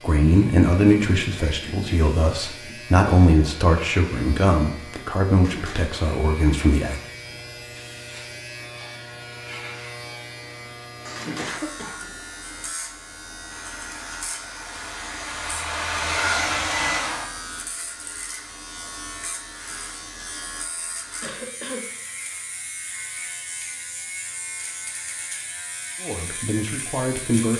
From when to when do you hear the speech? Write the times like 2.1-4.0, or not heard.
0.0-7.0, 26.0-27.5.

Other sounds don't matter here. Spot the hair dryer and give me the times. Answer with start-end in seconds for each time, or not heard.
13.5-17.3.